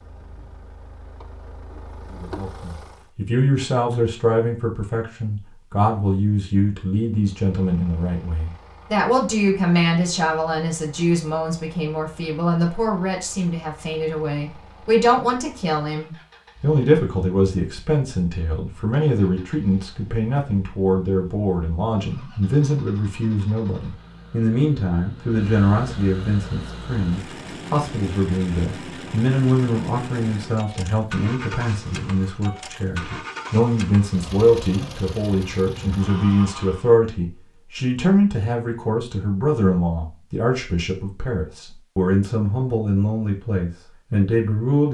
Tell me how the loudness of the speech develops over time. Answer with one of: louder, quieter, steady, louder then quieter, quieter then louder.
steady.